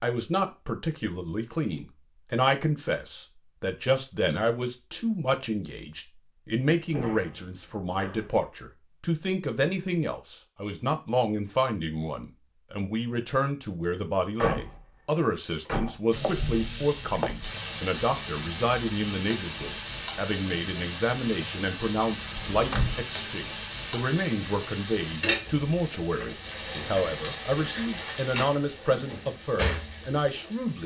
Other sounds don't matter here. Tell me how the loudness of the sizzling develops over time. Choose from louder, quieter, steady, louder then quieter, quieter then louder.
steady.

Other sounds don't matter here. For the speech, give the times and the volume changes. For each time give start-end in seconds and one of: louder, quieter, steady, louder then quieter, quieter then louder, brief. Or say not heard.
0.0-30.8 steady.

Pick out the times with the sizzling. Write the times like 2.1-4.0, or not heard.
16.1-30.8.